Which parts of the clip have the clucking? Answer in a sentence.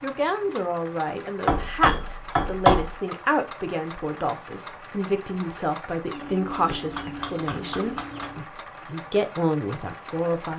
The clucking can be heard from 6.1 to 8.4 s.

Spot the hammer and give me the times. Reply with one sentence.
You can hear the hammer from 1.4 to 2.9 s and from 6.8 to 8.3 s.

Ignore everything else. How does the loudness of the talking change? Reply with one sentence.
The volume of the talking stays about the same.